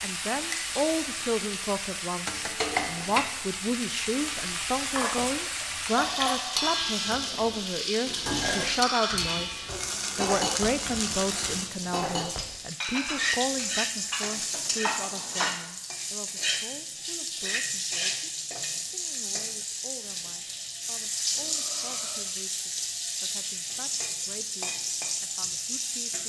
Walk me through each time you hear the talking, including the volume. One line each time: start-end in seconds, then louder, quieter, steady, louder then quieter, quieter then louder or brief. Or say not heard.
0.0-26.2 quieter.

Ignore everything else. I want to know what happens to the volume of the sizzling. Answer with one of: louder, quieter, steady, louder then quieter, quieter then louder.
steady.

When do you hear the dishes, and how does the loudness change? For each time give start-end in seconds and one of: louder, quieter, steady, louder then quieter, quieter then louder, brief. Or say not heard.
5.0-15.6 steady.